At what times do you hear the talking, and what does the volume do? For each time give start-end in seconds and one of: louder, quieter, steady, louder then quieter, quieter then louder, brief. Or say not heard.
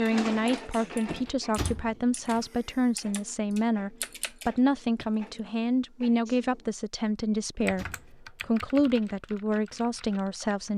0.0-10.7 steady.